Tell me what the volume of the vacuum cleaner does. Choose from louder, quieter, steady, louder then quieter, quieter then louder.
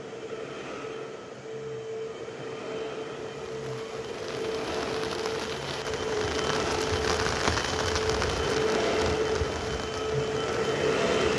louder.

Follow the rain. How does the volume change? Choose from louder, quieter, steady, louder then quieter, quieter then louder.
louder then quieter.